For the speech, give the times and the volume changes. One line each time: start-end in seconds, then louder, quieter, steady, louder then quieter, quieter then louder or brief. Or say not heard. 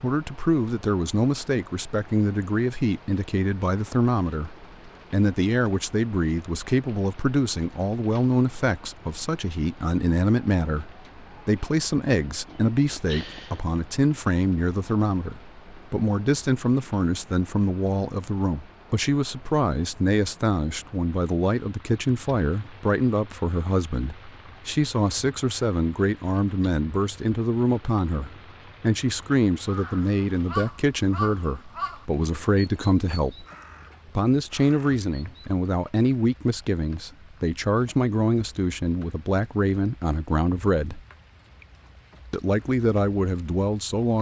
0.0-33.5 steady
34.1-41.0 steady
42.3-44.1 brief.